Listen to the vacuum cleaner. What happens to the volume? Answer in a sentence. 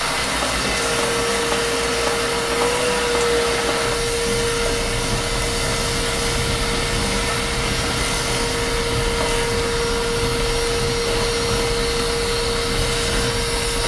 The loudness of the vacuum cleaner stays about the same.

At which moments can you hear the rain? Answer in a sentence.
The rain can be heard from 0.0 to 13.8 s.